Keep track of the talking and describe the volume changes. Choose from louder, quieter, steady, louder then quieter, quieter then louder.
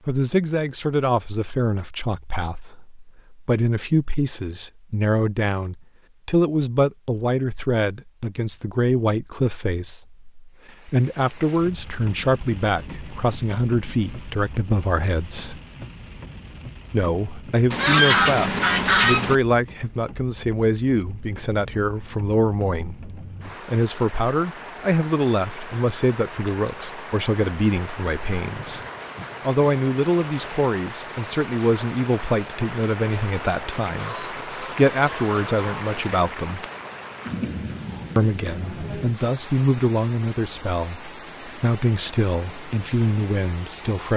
steady.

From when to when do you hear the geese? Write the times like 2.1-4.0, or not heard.
17.7-19.4, 34.0-35.9.